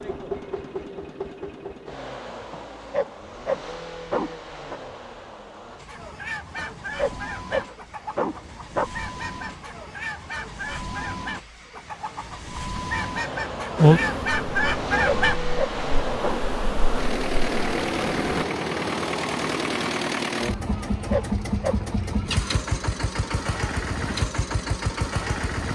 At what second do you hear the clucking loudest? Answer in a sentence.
The volume of the clucking peaks at 15 seconds.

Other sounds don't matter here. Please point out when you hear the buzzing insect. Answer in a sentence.
You can hear the buzzing insect from 13.8 to 18.4 s.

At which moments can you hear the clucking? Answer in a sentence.
You can hear the clucking from 5.7 to 15.6 s.